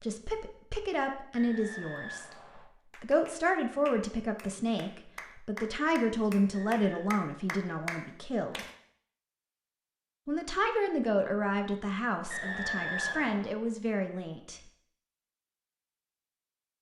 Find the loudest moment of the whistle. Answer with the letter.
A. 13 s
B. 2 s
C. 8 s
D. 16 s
A.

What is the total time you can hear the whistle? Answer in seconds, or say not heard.
3 s.